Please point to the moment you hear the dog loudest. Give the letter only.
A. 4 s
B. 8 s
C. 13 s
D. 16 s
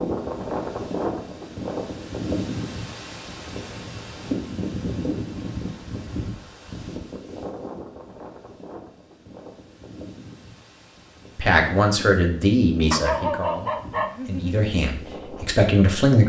C.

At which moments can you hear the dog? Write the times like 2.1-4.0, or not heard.
12.9-14.7.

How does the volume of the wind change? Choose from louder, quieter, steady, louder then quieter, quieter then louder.
quieter.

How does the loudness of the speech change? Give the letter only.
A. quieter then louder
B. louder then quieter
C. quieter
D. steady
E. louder
A.